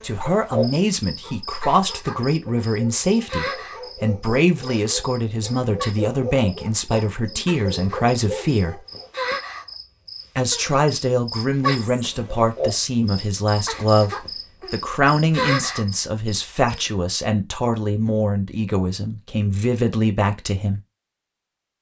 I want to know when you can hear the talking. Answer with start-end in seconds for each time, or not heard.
0.0-8.8, 10.3-20.8.